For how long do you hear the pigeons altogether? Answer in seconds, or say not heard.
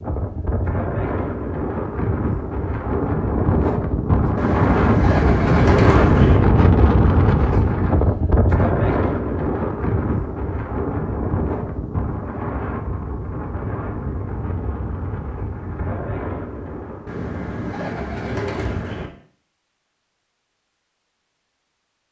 4 s.